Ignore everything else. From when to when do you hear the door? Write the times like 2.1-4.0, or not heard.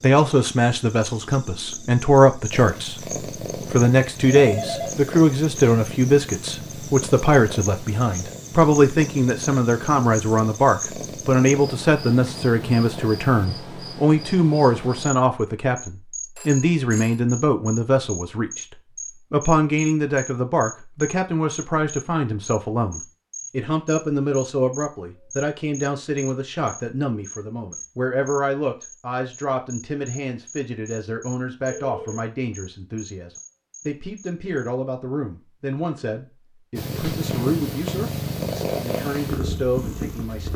not heard.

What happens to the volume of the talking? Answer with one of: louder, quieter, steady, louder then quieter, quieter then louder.
quieter.